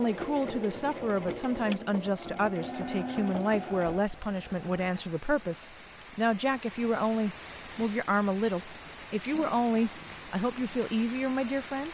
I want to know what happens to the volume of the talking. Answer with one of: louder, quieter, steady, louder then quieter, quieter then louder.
steady.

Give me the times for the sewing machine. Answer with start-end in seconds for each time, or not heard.
0.0-5.6.